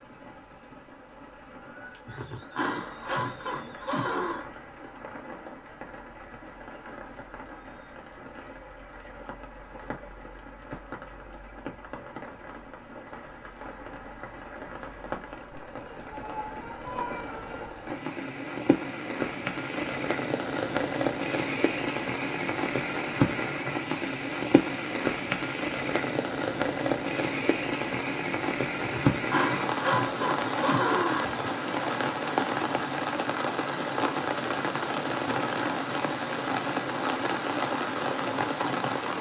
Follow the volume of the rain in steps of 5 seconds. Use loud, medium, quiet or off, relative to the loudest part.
quiet, quiet, quiet, medium, loud, loud, loud, loud.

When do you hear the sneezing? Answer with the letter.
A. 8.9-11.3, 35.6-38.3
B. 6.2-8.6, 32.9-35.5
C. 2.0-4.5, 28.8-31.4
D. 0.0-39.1
C.